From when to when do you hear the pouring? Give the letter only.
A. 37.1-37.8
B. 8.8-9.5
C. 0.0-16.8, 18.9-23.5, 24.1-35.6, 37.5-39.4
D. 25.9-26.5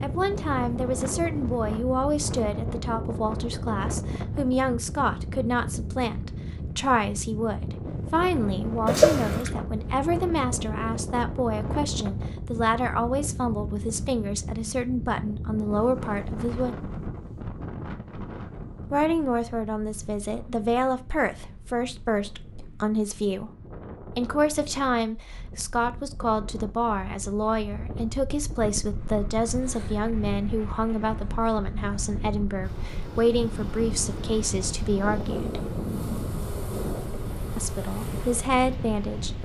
B.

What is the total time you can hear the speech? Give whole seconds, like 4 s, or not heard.
35 s.